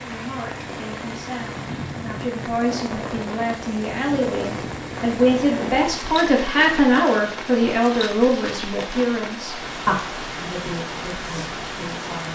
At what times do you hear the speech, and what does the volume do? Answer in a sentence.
You can hear the speech from 0.0 to 12.3 s, getting louder then quieter.